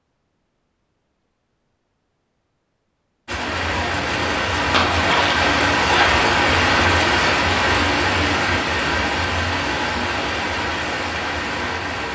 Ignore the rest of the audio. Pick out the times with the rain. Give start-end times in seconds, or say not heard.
3.2-12.1.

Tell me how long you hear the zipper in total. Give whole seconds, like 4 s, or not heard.
2 s.